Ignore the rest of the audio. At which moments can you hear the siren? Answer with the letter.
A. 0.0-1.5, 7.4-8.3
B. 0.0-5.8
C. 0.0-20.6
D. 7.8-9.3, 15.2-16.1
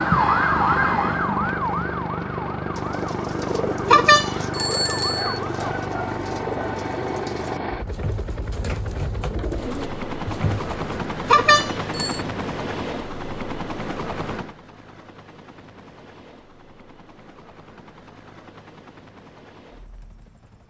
B.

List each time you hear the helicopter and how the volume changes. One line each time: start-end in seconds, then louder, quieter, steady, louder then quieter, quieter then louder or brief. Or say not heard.
0.0-20.6 quieter.